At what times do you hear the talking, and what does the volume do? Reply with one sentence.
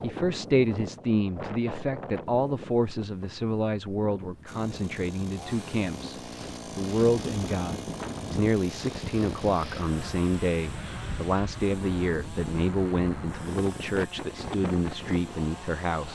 You can hear the talking from 0.0 to 6.2 s, getting quieter; and from 6.8 to 16.0 s, at a steady volume.